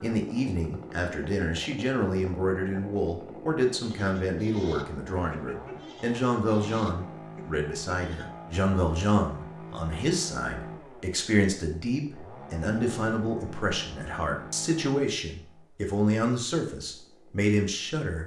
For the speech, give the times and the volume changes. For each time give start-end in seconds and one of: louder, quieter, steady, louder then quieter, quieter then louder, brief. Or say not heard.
0.0-18.2 steady.